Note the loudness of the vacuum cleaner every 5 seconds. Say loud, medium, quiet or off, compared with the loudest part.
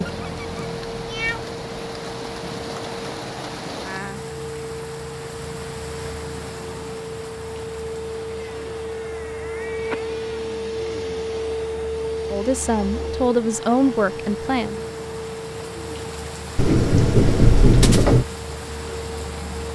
medium, loud, loud, medium.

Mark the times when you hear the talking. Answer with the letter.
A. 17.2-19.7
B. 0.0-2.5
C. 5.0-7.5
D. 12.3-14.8
D.